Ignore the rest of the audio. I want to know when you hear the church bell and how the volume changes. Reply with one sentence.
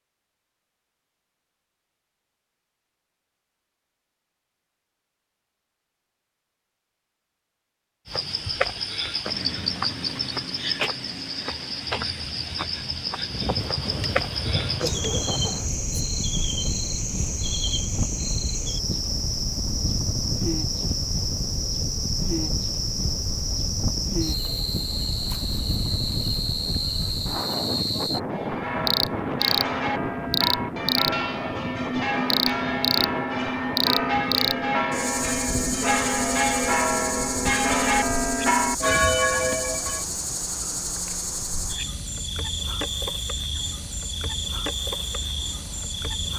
The church bell can be heard from 28.3 to 40.0 s, getting louder.